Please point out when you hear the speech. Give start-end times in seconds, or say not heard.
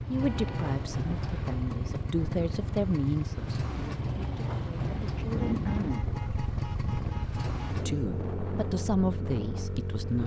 0.1-6.0, 7.7-10.2.